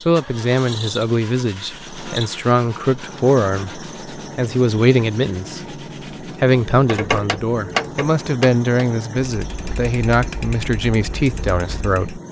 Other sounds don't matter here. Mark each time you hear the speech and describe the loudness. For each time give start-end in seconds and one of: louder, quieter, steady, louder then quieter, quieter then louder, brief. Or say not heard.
0.1-12.2 steady.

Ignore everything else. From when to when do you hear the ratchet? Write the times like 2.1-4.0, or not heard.
6.7-12.2.